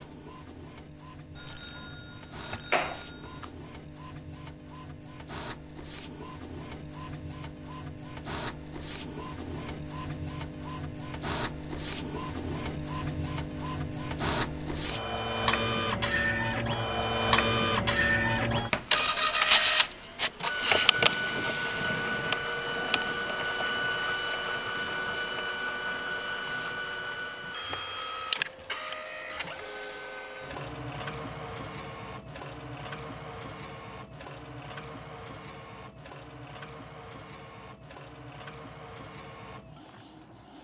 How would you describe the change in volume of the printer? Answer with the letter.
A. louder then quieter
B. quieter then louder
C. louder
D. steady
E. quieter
A.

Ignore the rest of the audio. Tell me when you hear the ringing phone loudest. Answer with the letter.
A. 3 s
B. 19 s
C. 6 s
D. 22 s
A.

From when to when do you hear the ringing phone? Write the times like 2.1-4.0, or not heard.
1.4-3.5.